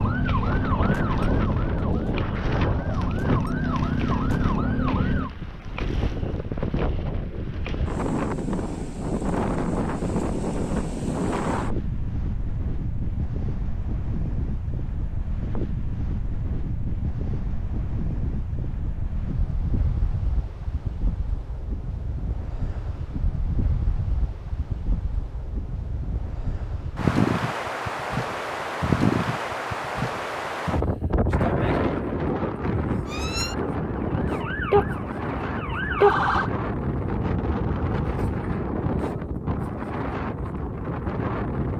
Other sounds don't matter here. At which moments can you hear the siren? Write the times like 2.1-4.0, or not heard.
0.0-5.3, 33.0-36.5.